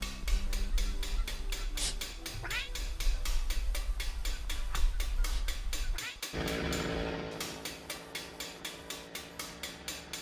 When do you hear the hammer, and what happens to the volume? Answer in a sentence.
You can hear the hammer from 0.0 to 10.1 s, at a steady volume.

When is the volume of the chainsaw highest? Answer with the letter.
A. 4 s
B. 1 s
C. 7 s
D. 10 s
C.